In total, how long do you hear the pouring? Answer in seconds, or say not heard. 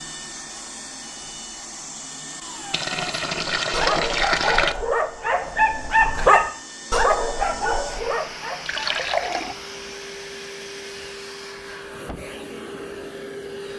3 s.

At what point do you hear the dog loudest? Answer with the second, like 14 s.
6 s.